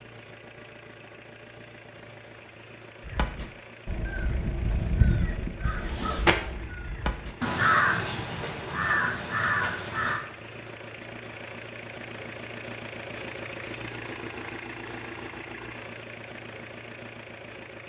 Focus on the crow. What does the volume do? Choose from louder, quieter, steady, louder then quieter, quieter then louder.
louder.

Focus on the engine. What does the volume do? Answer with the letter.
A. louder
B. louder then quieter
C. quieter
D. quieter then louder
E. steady
A.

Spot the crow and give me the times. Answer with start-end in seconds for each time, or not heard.
3.0-10.2.